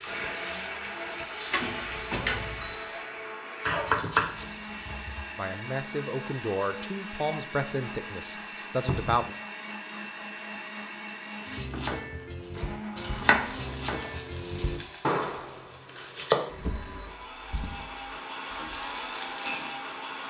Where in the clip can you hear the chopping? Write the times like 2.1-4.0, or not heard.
3.6-5.2, 11.4-16.4.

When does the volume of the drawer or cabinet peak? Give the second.
2 s.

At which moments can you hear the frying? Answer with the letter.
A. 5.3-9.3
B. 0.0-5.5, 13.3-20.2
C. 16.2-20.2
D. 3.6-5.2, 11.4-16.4
B.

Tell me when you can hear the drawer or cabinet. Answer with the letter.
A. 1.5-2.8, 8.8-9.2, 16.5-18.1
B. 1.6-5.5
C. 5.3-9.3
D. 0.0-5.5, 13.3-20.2
A.